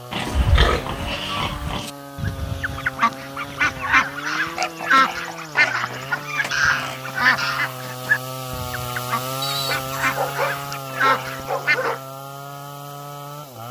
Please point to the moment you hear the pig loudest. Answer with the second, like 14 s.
1 s.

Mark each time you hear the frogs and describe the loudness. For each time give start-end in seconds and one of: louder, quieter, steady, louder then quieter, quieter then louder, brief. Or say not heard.
not heard.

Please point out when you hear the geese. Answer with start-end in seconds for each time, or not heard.
0.2-11.9.